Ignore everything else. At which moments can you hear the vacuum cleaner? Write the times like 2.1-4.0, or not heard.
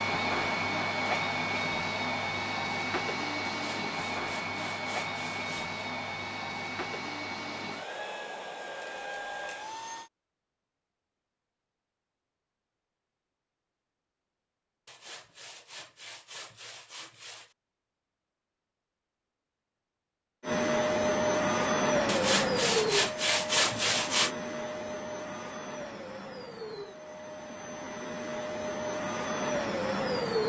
0.0-10.1, 20.4-30.4.